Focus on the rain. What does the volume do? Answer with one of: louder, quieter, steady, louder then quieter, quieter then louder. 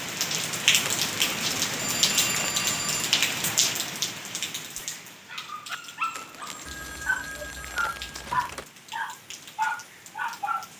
quieter.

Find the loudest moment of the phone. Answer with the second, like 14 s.
2 s.